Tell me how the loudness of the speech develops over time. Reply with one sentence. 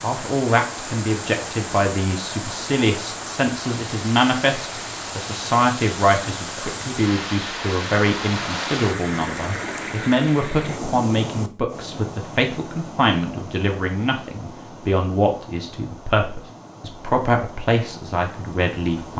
The loudness of the speech stays about the same.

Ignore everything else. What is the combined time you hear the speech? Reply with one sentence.
The speech can be heard for 19 seconds in total.